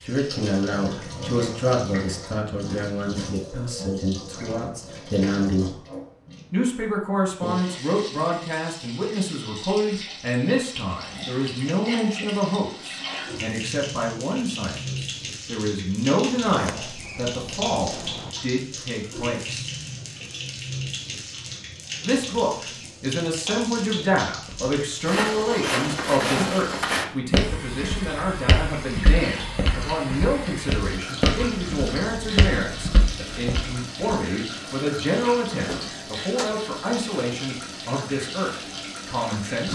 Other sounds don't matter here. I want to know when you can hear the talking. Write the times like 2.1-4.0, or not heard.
0.0-5.8, 6.5-19.7, 22.0-39.6.